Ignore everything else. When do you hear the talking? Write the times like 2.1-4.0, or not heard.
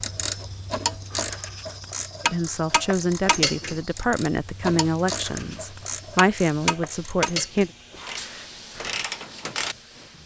2.2-7.7.